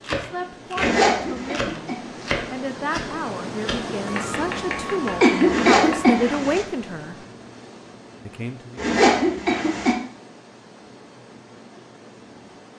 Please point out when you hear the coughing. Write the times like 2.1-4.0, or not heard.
1.1-2.0, 5.2-6.2, 9.0-10.0.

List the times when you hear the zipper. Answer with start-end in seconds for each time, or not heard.
0.8-1.6, 5.5-6.7, 8.8-9.9.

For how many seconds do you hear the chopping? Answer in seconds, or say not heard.
6 s.